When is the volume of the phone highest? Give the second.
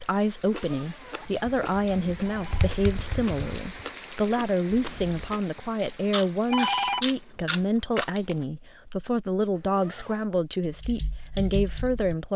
7 s.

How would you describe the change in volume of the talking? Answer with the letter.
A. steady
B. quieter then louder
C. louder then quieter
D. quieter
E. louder
A.